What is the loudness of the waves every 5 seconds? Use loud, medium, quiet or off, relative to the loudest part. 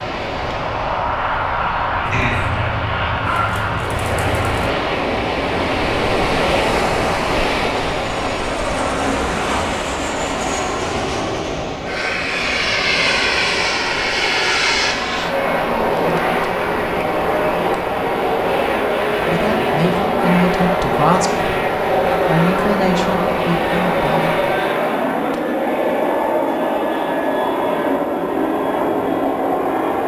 medium, loud, medium, medium, medium, off.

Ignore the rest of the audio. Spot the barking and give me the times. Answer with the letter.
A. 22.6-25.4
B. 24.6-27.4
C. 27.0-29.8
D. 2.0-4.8
D.